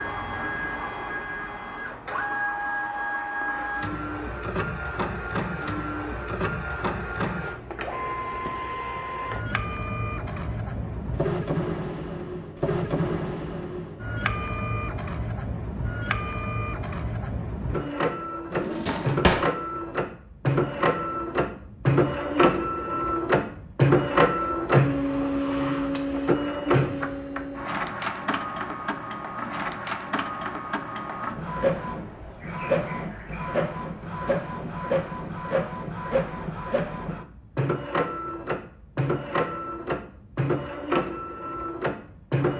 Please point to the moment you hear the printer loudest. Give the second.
24 s.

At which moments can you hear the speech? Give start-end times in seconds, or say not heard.
not heard.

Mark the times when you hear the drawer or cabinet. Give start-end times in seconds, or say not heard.
18.5-19.5.